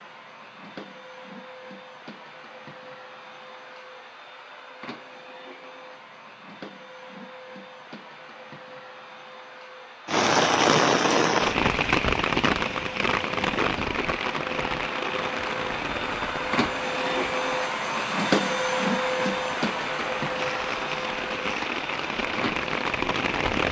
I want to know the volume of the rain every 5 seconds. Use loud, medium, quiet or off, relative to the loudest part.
off, off, loud, medium, medium.